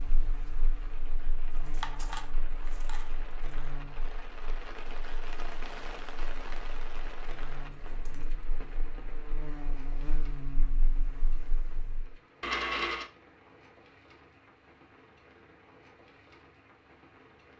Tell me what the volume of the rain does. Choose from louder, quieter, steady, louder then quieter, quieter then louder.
louder then quieter.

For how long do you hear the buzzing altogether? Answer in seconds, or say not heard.
12 s.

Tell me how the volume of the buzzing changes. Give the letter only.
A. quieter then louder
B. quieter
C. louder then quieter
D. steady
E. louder
A.